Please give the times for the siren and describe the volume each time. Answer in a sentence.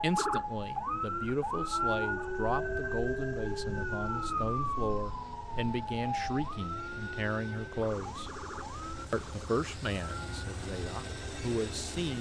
You can hear the siren from 0.0 to 12.1 s, getting quieter.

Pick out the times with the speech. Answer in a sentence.
You can hear the speech from 0.0 to 8.3 s and from 9.1 to 12.1 s.